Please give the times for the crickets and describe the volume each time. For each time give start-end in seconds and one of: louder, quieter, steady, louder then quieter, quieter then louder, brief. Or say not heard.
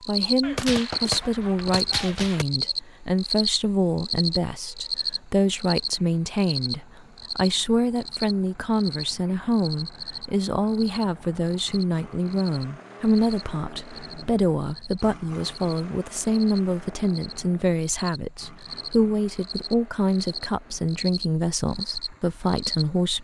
0.0-23.1 quieter then louder.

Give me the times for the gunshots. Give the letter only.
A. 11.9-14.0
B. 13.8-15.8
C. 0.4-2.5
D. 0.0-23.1
C.